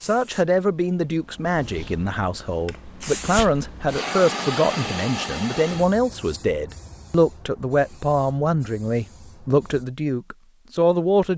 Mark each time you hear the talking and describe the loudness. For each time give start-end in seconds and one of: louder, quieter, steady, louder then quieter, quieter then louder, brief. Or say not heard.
0.0-11.3 steady.